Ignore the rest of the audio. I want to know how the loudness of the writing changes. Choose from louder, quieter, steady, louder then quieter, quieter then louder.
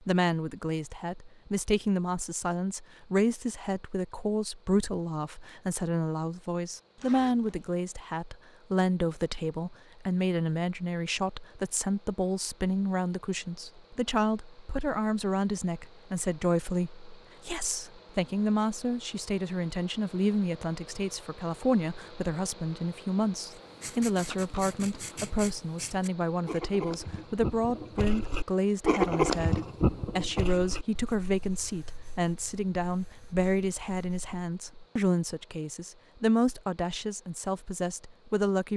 louder then quieter.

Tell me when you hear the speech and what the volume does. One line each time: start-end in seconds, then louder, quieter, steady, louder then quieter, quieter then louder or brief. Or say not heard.
0.0-38.7 steady.